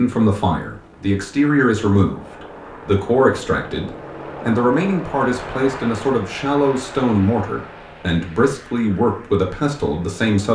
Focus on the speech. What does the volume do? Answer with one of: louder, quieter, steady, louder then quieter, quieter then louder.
steady.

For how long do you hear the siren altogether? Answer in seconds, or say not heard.
not heard.